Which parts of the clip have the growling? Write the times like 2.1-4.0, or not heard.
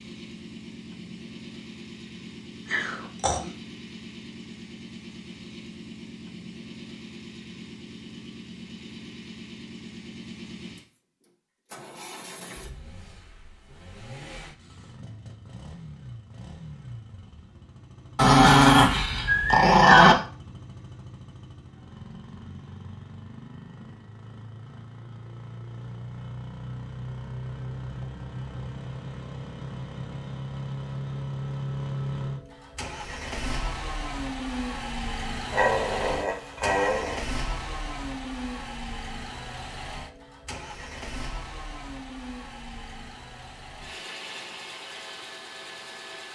2.6-3.5, 18.1-20.1, 35.5-37.2.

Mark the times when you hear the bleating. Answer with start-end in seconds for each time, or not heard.
not heard.